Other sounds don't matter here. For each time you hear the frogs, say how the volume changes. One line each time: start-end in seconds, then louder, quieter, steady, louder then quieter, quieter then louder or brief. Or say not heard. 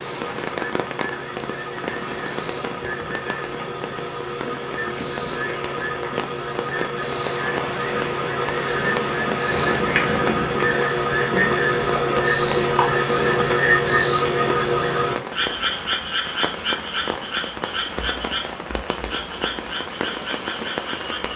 0.0-21.3 louder then quieter.